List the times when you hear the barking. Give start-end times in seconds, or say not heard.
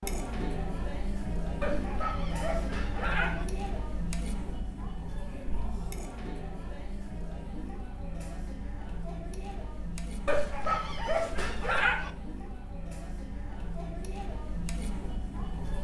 1.6-3.5, 10.2-12.1.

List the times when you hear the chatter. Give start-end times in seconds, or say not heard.
0.0-15.7.